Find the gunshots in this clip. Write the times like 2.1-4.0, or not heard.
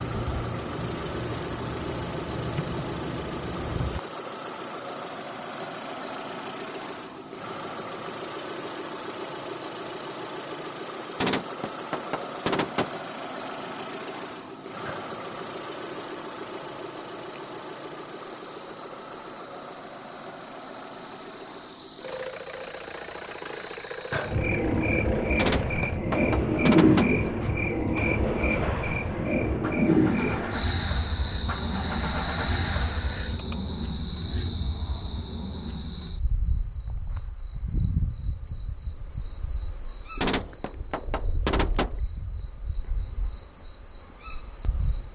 11.2-13.0, 25.4-27.1, 40.2-42.0.